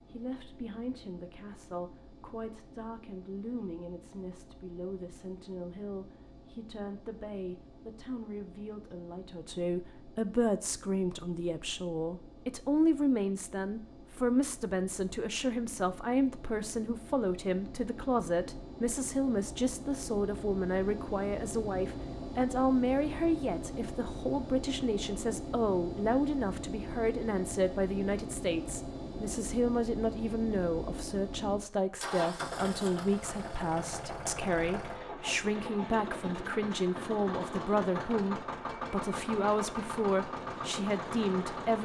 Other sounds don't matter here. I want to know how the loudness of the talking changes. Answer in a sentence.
The volume of the talking goes up.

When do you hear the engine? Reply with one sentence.
The engine can be heard from 0.0 to 41.8 s.